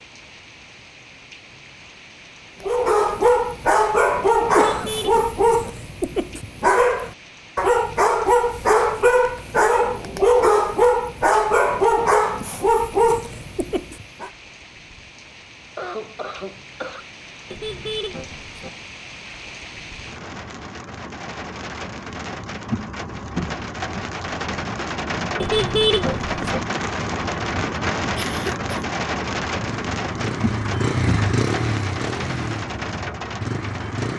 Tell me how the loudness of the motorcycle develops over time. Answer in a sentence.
The volume of the motorcycle goes up, then down.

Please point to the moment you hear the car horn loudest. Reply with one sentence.
The volume of the car horn peaks at 26 seconds.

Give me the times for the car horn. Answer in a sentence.
You can hear the car horn from 4.5 to 5.7 s, from 17.5 to 18.7 s and from 25.4 to 26.6 s.